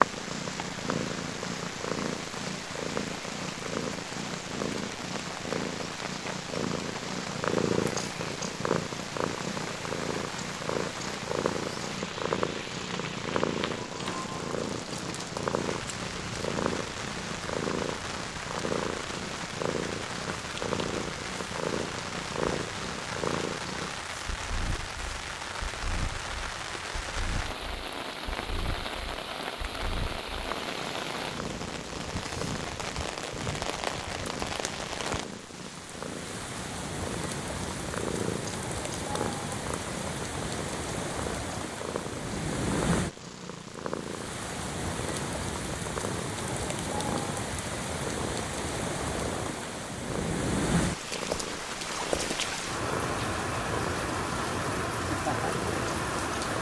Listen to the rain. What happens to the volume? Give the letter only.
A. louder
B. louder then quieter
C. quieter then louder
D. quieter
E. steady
A.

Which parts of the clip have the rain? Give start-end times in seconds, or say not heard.
0.0-56.5.